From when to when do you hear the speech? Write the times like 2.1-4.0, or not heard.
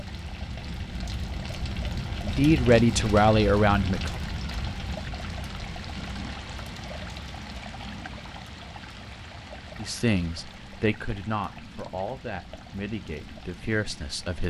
2.2-4.2, 9.8-14.4.